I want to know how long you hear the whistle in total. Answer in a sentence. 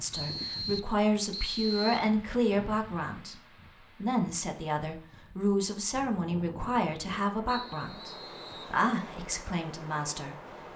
The whistle can be heard for 3 seconds in total.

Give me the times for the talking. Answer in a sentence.
The talking can be heard from 0.0 to 3.4 s and from 4.0 to 10.3 s.